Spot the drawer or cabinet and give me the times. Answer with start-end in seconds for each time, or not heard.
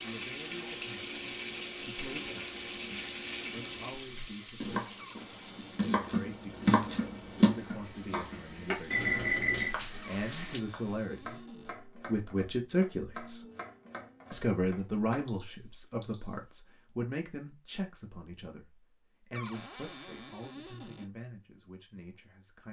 5.0-6.0, 10.0-11.8, 19.3-21.1.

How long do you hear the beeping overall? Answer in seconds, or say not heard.
4 s.